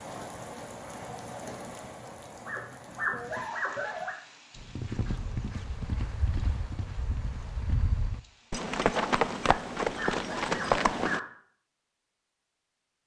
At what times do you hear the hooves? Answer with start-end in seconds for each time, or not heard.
4.5-11.2.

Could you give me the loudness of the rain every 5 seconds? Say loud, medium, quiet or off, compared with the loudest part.
loud, quiet, off.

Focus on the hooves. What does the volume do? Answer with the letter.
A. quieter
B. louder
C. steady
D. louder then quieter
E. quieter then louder
B.